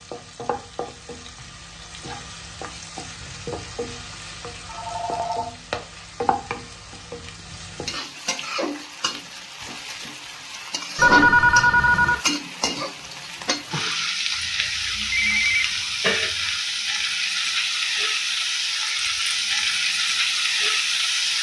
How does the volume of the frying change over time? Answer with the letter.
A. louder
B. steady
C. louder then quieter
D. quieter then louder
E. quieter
A.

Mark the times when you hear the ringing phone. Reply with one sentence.
The ringing phone can be heard from 4.7 to 5.5 s, from 10.9 to 12.2 s and from 15.1 to 15.8 s.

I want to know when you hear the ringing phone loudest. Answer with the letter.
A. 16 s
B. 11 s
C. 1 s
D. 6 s
B.